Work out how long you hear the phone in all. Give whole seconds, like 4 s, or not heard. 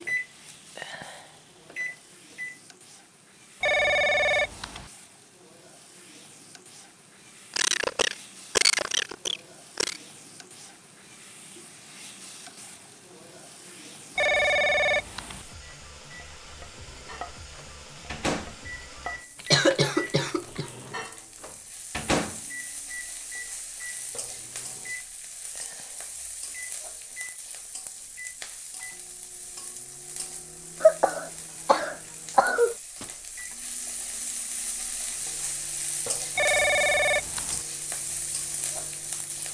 4 s.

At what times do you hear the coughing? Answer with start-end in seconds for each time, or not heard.
7.5-10.0, 19.4-20.7, 30.8-32.8.